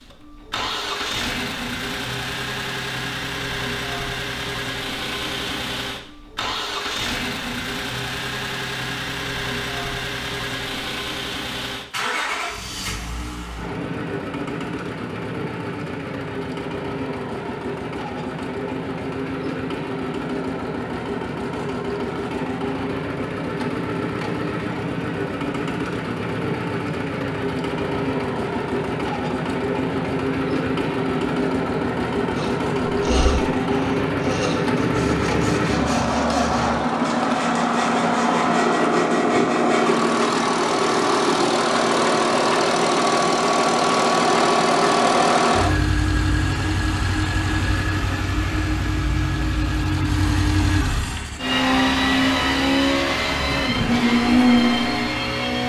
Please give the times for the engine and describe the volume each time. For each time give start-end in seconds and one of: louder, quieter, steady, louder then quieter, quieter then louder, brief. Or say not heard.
0.0-55.6 louder.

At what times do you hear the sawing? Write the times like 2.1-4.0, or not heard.
32.4-40.0.